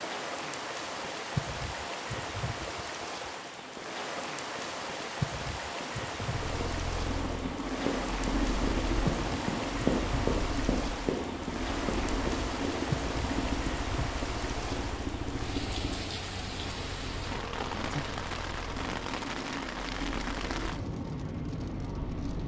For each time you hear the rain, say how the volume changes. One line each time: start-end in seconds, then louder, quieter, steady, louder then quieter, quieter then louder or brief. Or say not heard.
0.0-22.4 steady.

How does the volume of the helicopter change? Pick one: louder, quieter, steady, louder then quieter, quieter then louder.
quieter.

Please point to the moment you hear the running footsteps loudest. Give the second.
10 s.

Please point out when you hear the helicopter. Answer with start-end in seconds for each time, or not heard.
6.3-22.4.